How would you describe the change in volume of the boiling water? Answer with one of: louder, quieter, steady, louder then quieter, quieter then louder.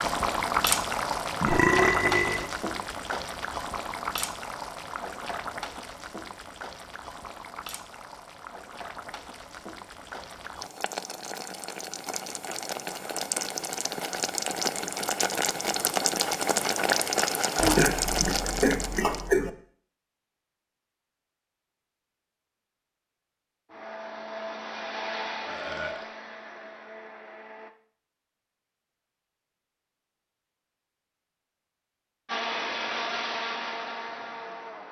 quieter then louder.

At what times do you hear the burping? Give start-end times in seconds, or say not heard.
1.4-2.5, 17.6-19.5, 25.4-26.1.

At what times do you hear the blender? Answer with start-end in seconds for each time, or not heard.
23.6-27.7, 32.2-34.8.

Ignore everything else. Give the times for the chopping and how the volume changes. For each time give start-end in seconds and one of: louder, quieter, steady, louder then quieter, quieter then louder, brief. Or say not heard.
not heard.